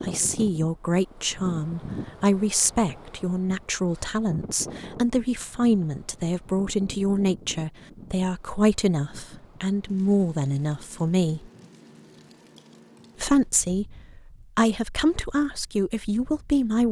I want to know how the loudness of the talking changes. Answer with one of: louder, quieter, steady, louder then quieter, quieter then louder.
steady.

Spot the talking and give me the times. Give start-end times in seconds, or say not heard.
0.0-11.5, 13.2-16.8.